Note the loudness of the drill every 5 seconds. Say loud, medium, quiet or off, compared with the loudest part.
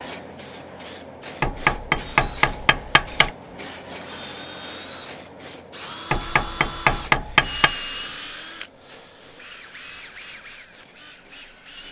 medium, loud, medium.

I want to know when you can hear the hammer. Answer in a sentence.
You can hear the hammer from 1.4 to 3.3 s and from 6.1 to 7.8 s.